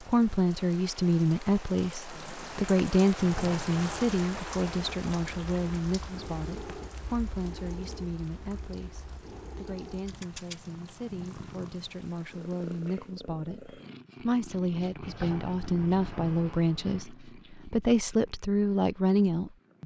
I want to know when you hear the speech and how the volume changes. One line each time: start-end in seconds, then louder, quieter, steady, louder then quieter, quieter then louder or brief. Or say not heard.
0.1-19.8 quieter then louder.